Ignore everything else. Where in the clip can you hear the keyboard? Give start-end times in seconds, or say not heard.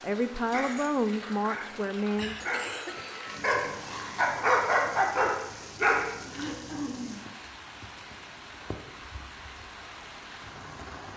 not heard.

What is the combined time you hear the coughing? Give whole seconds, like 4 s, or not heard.
2 s.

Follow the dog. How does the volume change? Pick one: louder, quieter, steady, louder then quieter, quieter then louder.
louder.